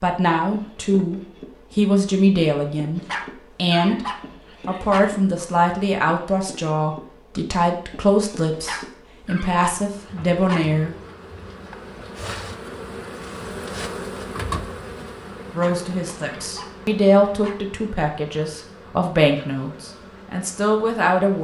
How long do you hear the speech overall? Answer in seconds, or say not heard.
16 s.